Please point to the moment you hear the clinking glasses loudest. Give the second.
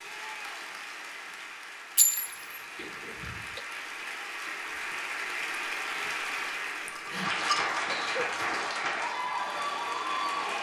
2 s.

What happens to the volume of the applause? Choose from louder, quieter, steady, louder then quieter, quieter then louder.
louder.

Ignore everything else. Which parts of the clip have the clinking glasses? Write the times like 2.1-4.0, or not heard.
1.9-2.4, 6.9-7.8.